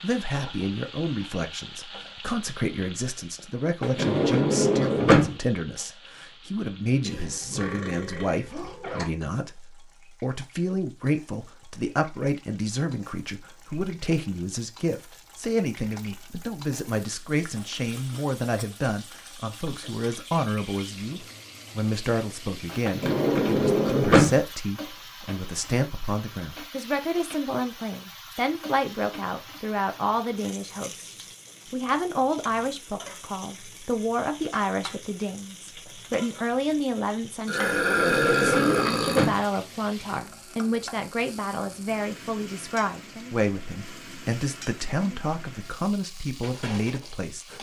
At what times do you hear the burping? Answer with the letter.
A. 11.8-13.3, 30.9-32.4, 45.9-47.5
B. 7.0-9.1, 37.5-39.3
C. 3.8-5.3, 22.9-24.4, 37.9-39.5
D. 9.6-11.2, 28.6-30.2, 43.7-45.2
B.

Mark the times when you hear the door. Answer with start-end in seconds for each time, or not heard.
3.8-5.3, 22.9-24.4, 37.9-39.5.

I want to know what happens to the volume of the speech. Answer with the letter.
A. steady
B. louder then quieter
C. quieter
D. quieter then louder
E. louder
A.